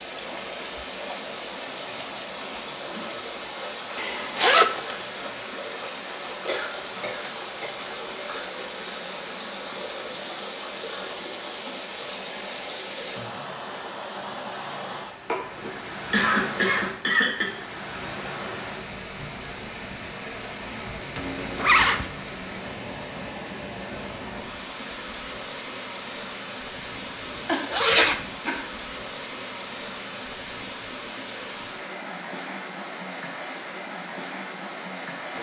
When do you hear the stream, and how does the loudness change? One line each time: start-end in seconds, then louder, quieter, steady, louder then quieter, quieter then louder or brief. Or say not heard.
0.0-35.3 steady.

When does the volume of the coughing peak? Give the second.
16 s.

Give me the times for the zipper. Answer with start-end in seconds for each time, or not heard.
4.0-5.0, 21.1-22.1, 27.2-28.2.